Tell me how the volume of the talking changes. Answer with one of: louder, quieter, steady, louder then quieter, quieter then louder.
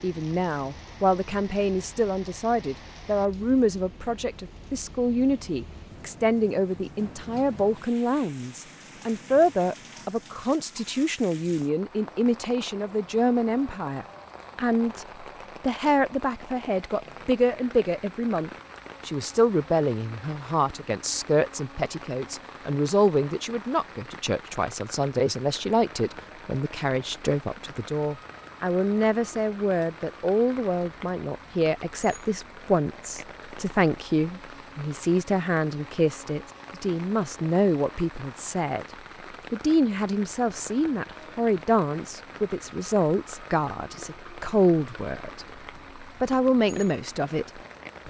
steady.